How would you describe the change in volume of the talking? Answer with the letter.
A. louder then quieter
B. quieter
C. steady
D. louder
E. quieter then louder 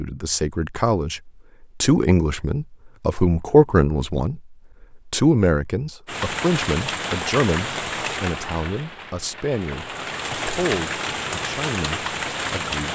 B.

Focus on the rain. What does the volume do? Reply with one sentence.
The loudness of the rain goes down, then up.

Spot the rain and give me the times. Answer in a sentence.
You can hear the rain from 6.0 to 12.9 s.